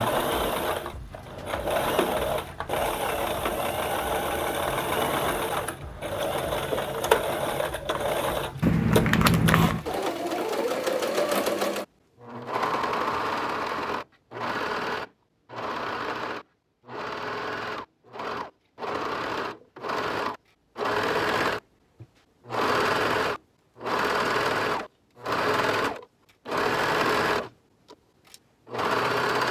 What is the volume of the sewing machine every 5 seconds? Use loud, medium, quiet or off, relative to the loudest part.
loud, loud, loud, medium, loud, loud.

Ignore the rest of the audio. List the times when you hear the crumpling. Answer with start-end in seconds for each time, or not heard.
8.6-9.8.